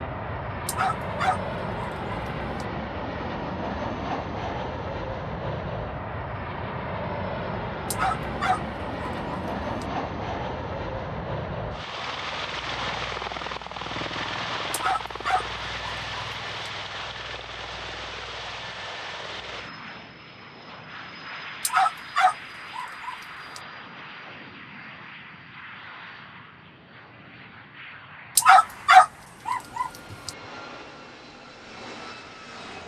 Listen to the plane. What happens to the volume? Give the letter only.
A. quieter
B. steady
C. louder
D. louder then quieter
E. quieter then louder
A.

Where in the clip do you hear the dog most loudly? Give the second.
29 s.